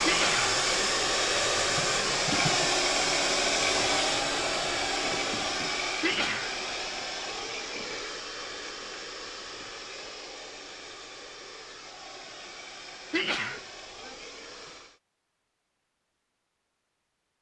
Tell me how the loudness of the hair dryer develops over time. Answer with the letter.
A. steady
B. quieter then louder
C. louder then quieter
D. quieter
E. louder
D.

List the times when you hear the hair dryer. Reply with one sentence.
You can hear the hair dryer from 0.0 to 15.0 s.